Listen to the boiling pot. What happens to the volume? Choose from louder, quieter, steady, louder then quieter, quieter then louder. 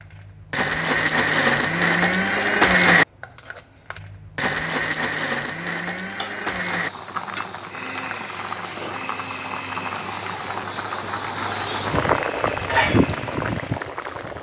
louder.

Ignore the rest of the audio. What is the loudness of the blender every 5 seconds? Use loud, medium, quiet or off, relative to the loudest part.
loud, medium, quiet.